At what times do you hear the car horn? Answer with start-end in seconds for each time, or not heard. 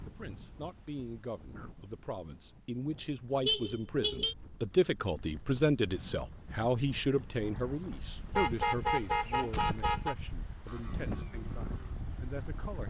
3.5-4.3, 8.3-10.2.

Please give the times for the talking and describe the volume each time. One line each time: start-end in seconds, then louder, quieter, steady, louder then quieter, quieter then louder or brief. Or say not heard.
0.0-12.8 louder then quieter.